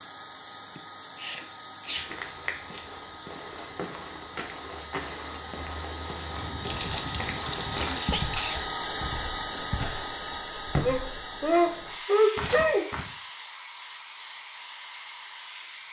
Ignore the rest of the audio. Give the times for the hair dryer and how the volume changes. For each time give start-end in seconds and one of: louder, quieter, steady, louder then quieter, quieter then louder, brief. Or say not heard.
0.0-15.8 louder then quieter.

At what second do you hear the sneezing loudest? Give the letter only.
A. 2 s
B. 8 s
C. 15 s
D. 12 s
D.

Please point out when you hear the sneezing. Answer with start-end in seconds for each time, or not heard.
0.8-2.1, 6.7-8.6, 10.8-12.8.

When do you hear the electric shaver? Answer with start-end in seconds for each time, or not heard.
not heard.